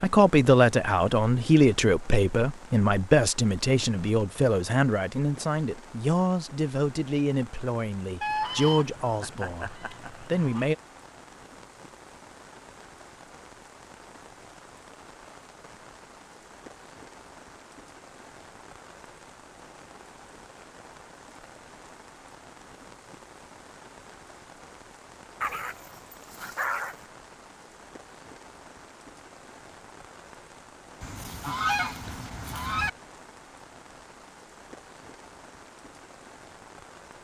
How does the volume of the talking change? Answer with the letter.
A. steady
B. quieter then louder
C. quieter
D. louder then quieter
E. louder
C.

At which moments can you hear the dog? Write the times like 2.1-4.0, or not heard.
25.4-26.9.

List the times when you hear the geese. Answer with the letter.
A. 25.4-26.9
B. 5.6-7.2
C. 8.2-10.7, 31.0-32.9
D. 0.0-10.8
C.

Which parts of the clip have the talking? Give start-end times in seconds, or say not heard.
0.0-10.8.